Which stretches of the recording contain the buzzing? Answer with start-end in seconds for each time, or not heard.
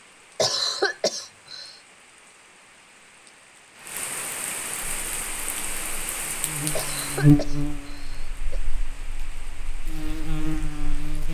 4.8-11.2.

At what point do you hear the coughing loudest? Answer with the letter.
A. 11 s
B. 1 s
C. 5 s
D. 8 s
B.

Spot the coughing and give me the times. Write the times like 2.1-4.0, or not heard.
0.3-1.8, 6.8-8.6.